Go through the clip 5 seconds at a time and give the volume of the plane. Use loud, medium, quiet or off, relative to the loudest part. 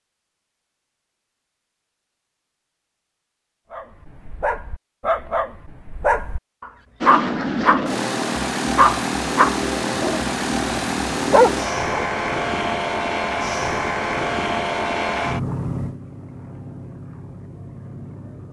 off, loud, loud, medium.